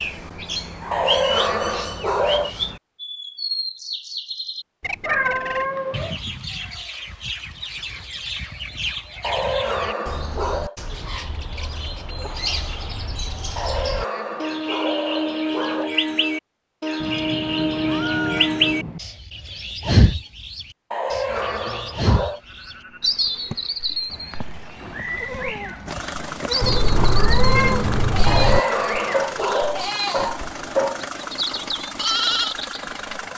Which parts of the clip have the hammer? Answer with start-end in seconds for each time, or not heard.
not heard.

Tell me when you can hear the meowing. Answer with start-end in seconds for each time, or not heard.
5.0-6.2, 17.0-19.0, 26.6-28.6.